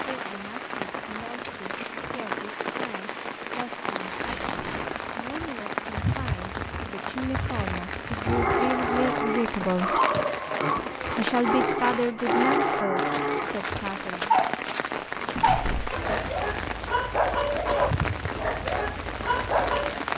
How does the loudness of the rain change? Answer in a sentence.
The volume of the rain stays about the same.